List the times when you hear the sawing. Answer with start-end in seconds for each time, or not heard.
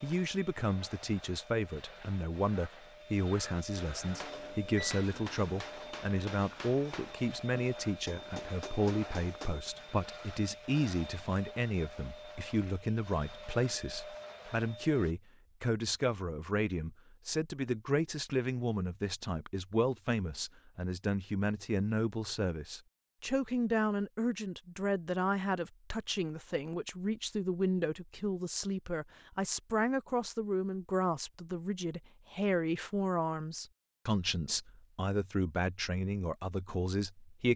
not heard.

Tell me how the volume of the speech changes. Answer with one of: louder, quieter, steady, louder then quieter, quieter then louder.
steady.